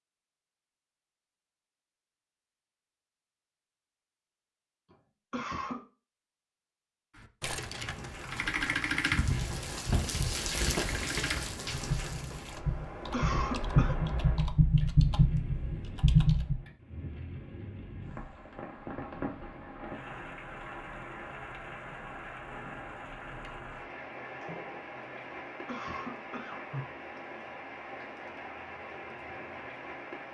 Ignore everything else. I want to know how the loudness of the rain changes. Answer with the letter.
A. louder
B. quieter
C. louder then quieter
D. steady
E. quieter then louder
B.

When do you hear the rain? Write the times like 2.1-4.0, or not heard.
7.6-30.2.